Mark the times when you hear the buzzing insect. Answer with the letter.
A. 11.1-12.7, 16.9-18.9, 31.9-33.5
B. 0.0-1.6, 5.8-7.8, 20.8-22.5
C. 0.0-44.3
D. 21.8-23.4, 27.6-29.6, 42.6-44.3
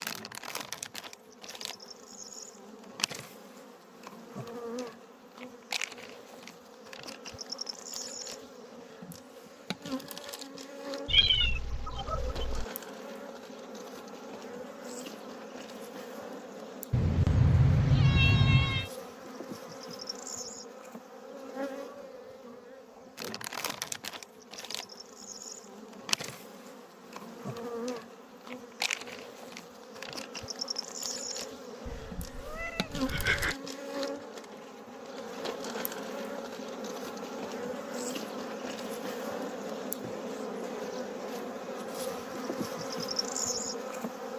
C.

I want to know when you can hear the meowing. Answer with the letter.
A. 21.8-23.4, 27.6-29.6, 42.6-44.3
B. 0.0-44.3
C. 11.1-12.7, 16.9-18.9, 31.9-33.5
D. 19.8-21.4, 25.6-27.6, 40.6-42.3
C.